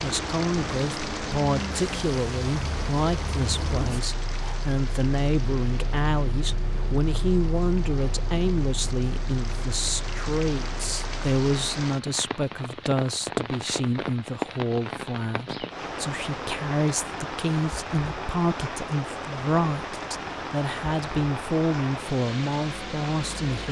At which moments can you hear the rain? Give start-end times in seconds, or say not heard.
0.0-23.6.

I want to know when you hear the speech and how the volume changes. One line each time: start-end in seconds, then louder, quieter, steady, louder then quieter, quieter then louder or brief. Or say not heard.
0.0-23.6 steady.